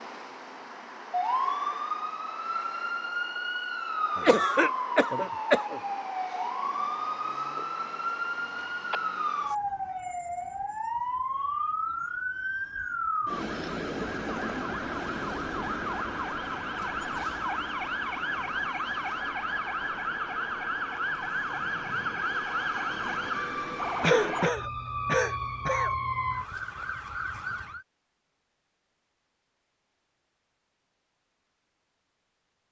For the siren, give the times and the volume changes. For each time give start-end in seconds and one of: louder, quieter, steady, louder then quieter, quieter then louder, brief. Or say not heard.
0.0-27.9 steady.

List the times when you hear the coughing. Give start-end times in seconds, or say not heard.
4.2-5.8, 24.0-25.9.